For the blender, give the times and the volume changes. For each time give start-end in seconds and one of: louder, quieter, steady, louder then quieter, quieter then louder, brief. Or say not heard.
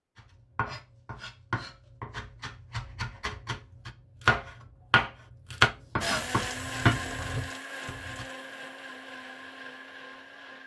6.0-10.6 quieter.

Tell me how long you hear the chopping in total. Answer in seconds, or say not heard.
8 s.